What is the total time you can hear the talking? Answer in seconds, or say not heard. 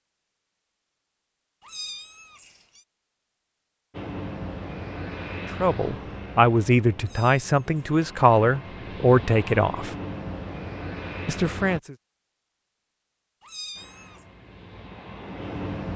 5 s.